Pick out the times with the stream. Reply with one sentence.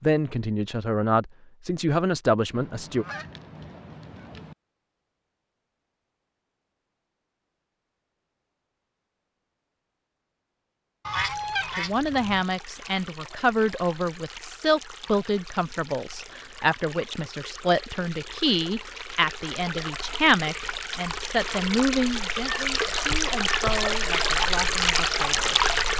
The stream can be heard from 11.2 to 25.9 s.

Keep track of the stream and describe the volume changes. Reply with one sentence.
The volume of the stream goes up.